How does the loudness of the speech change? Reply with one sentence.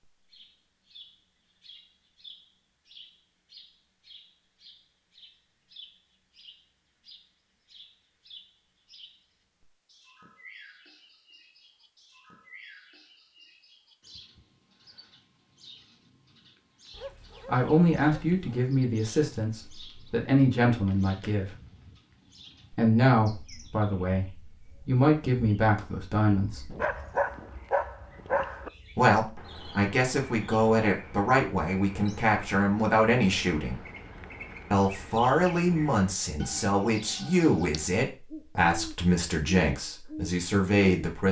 The volume of the speech stays about the same.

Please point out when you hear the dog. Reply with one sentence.
The dog can be heard from 16.9 to 18.7 s and from 26.7 to 28.7 s.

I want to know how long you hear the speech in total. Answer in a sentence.
The speech can be heard for 19 seconds in total.